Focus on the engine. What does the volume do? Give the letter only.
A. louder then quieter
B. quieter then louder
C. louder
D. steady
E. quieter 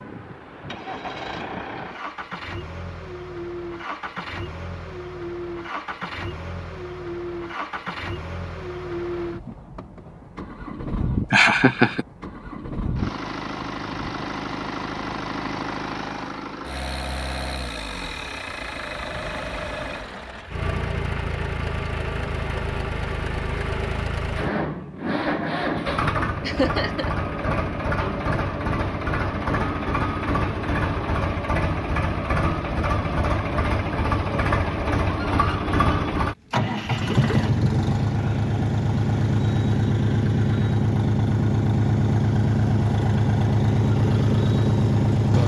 C.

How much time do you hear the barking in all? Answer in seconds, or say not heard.
not heard.